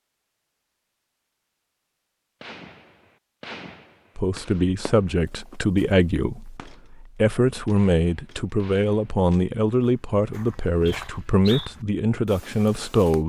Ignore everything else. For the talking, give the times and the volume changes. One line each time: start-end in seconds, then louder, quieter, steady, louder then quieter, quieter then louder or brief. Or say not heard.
4.2-13.2 steady.